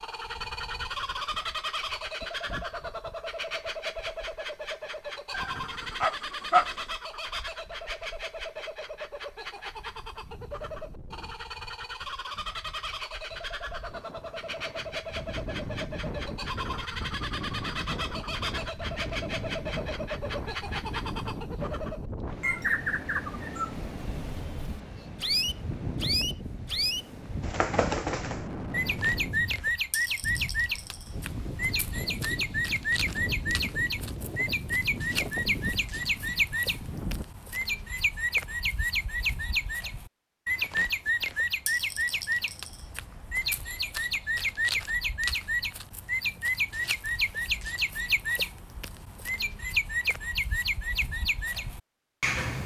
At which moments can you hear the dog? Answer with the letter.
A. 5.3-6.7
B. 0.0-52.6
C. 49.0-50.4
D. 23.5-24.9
A.